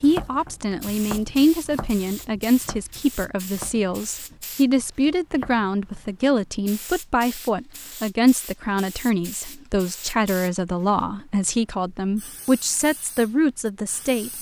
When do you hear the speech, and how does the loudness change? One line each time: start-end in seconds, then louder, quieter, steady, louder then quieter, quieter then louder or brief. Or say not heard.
0.0-14.3 steady.